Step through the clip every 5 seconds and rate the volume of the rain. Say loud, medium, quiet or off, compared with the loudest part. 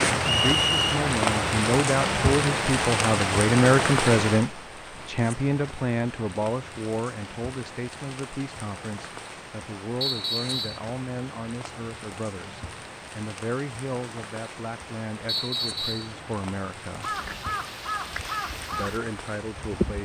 loud, quiet, quiet, quiet.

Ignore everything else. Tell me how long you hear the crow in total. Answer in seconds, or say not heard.
3 s.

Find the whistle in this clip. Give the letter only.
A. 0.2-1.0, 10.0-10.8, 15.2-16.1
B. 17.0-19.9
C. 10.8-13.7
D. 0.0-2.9
A.